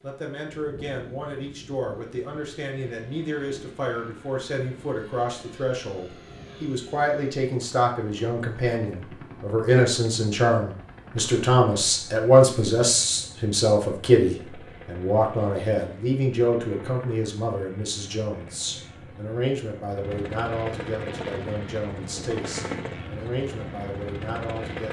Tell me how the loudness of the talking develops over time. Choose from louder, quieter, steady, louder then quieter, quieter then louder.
louder then quieter.